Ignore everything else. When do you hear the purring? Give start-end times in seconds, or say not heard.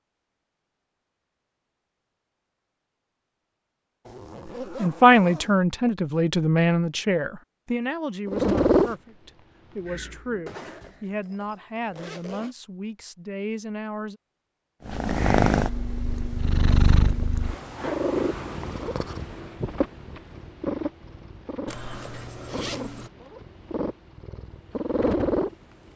8.2-10.4, 14.8-25.6.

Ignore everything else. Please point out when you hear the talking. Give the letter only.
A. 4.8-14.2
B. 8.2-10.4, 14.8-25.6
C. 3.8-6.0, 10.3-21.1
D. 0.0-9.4
A.